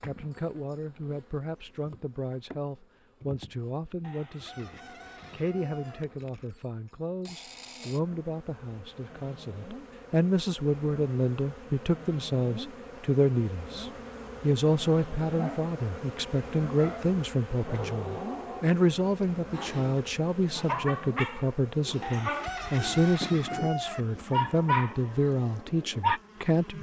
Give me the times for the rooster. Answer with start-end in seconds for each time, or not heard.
4.0-6.0, 22.0-24.1.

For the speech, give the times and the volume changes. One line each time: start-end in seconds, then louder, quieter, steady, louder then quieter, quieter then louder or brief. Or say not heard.
0.0-26.7 louder.